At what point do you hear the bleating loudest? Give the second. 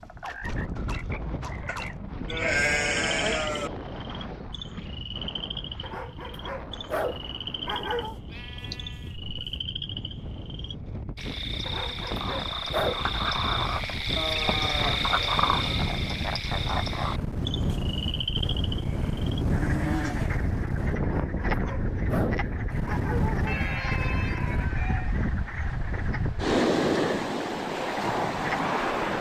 3 s.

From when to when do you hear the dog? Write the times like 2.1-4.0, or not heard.
5.8-8.2, 11.7-13.1, 21.0-23.6.